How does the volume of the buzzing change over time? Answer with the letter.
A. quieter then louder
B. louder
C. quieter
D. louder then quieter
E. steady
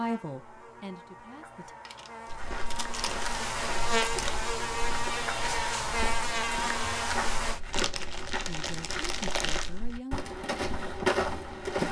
B.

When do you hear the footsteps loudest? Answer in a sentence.
The loudest moment of the footsteps is at 11 seconds.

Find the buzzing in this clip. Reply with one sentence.
The buzzing can be heard from 0.0 to 7.6 s.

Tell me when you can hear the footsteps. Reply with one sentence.
The footsteps can be heard from 2.2 to 11.8 s.